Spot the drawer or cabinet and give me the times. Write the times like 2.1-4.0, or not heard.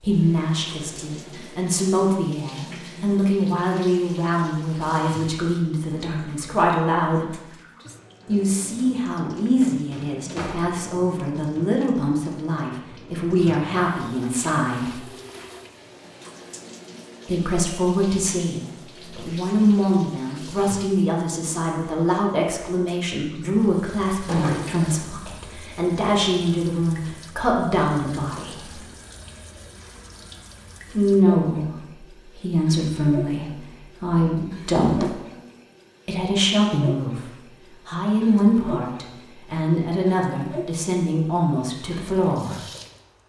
9.9-10.6, 24.2-25.1, 34.8-35.3.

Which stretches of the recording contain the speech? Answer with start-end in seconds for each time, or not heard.
0.0-7.3, 8.2-15.0, 17.2-28.8, 30.9-35.1, 36.0-42.6.